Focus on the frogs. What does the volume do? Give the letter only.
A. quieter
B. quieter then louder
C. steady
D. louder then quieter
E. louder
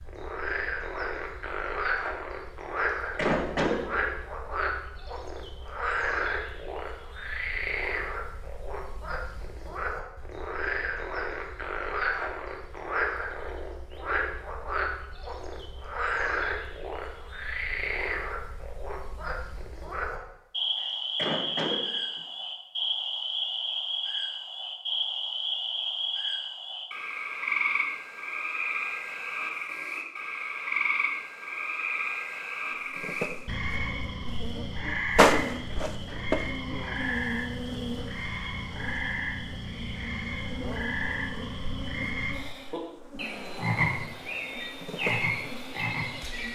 C.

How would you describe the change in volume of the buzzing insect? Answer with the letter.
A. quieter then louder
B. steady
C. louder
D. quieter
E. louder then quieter
D.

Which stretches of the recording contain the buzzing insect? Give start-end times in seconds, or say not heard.
32.9-46.5.